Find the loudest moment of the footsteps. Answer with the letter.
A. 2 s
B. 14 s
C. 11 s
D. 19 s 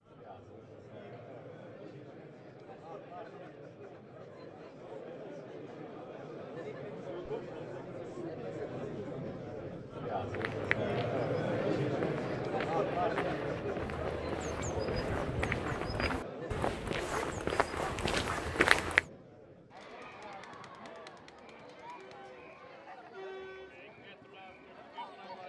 D.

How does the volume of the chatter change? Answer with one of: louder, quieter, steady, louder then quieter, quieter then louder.
louder then quieter.